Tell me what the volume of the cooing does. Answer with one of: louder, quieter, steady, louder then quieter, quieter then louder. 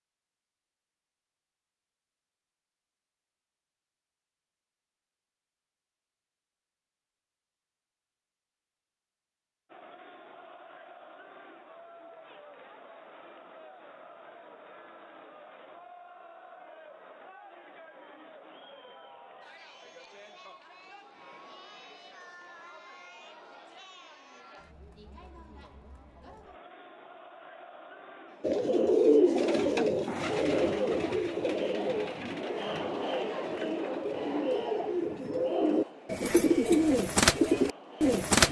quieter then louder.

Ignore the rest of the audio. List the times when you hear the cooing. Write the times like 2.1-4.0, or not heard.
28.4-38.4.